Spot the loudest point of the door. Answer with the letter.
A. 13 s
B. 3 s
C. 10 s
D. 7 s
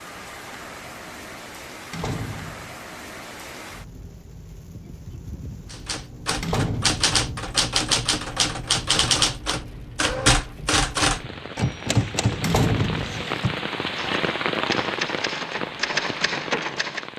A.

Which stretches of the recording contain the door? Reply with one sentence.
The door can be heard from 1.9 to 2.8 s, from 6.4 to 7.0 s and from 12.4 to 13.2 s.